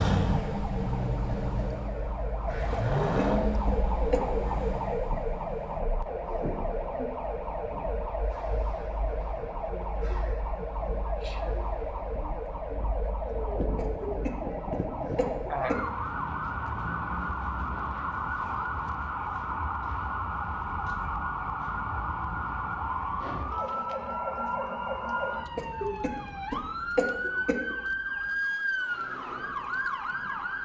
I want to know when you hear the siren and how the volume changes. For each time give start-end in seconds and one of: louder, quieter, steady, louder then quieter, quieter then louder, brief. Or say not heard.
0.1-30.6 steady.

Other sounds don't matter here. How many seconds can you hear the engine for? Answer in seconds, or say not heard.
6 s.